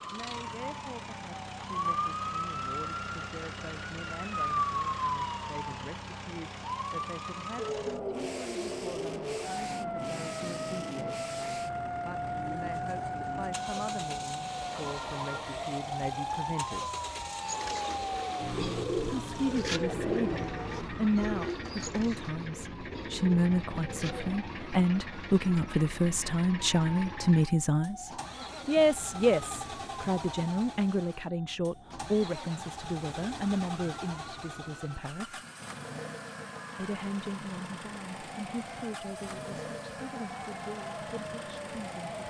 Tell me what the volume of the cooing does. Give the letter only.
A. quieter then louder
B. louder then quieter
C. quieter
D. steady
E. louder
C.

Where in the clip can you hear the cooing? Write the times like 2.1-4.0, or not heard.
17.4-24.4.